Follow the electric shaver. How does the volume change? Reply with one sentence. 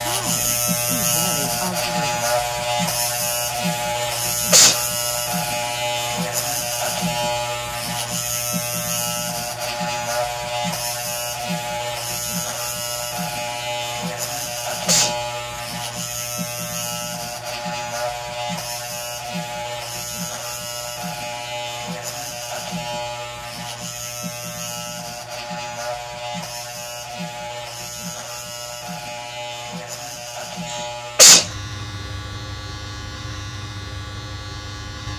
The loudness of the electric shaver goes down.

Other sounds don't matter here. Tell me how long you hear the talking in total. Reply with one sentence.
You can hear the talking for 2 seconds altogether.